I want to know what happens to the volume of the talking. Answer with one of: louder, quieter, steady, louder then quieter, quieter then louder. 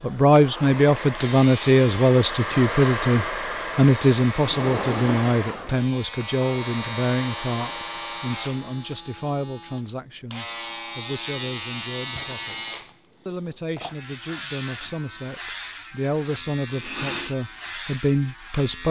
quieter then louder.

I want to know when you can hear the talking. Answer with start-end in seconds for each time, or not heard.
0.0-18.8.